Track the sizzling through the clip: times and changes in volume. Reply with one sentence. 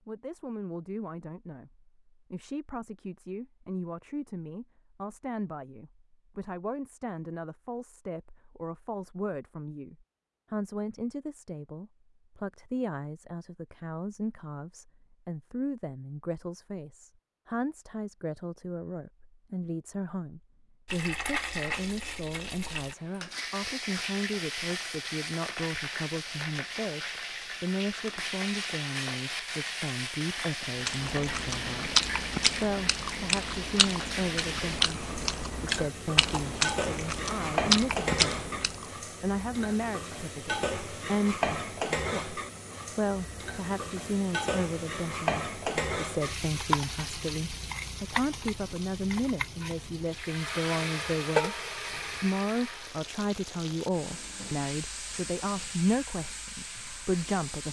The sizzling can be heard from 20.9 to 57.6 s, at a steady volume.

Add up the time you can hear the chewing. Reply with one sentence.
You can hear the chewing for 8 seconds altogether.